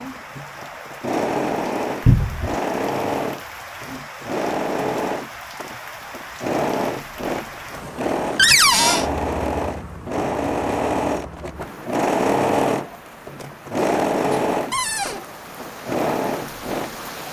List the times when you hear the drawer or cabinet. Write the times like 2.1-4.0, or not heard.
2.0-2.5, 8.3-9.1, 14.7-15.2.